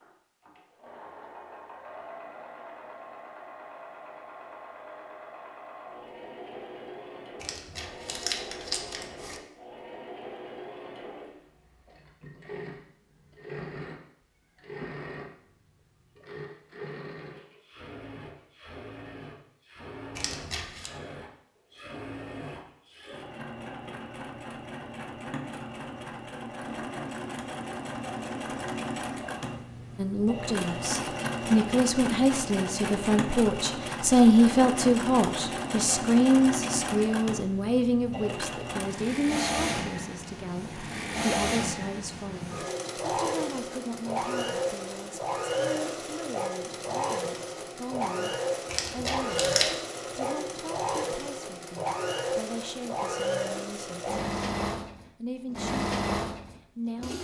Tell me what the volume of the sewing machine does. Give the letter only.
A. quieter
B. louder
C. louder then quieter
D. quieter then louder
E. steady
B.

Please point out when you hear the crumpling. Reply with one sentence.
The crumpling can be heard from 7.4 to 9.4 s, from 20.1 to 20.9 s and from 48.6 to 49.8 s.